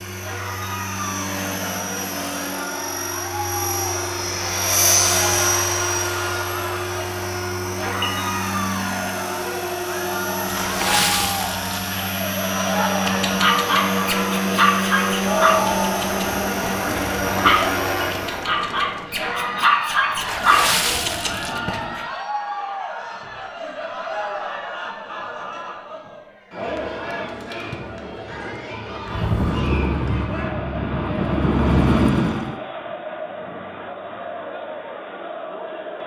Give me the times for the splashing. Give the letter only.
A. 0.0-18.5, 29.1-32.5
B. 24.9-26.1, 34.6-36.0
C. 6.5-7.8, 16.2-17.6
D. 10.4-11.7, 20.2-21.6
D.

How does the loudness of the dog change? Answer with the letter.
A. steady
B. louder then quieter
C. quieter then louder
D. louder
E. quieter
A.